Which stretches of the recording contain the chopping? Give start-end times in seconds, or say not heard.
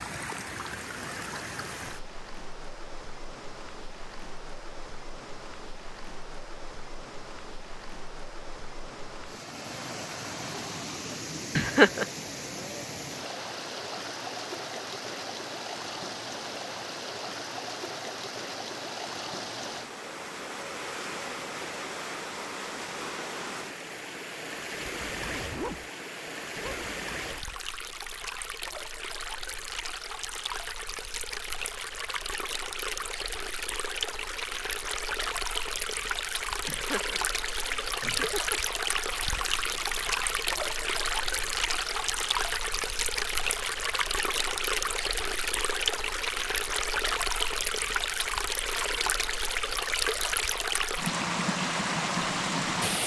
not heard.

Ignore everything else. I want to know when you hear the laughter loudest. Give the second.
12 s.